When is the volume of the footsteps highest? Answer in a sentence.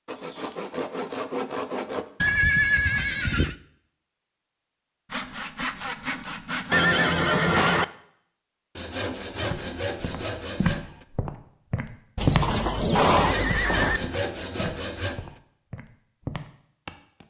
The loudest moment of the footsteps is at 12 seconds.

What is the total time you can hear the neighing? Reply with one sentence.
The neighing can be heard for 4 seconds in total.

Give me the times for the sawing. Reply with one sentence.
You can hear the sawing from 0.1 to 2.0 s, from 5.1 to 7.0 s, from 8.8 to 11.1 s and from 13.1 to 15.3 s.